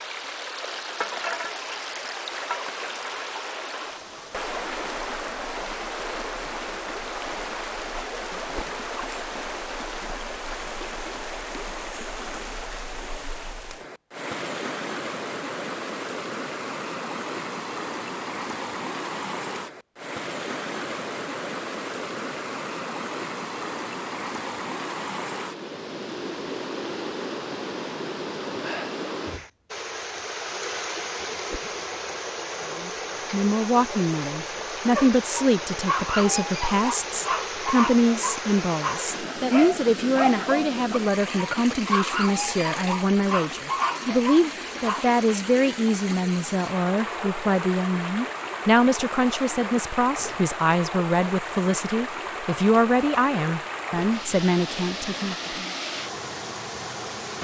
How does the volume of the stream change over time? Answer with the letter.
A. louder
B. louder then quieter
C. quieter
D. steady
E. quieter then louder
D.